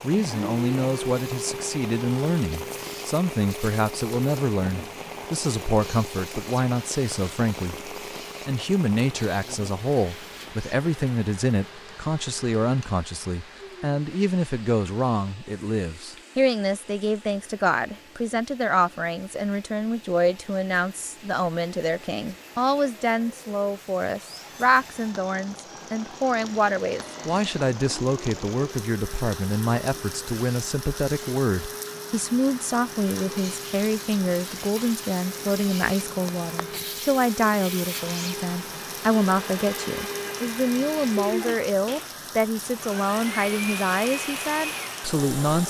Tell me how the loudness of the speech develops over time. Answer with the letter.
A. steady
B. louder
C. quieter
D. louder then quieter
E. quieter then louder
A.